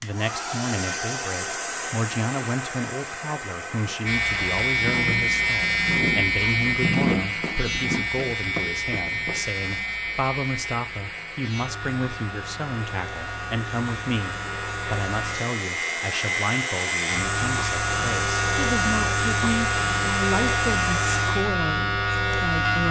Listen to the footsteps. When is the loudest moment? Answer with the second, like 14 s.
7 s.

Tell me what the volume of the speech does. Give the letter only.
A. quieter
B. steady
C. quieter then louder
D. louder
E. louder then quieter
B.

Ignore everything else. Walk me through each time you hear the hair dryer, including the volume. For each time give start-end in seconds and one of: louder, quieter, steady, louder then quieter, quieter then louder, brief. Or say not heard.
0.0-21.4 quieter then louder.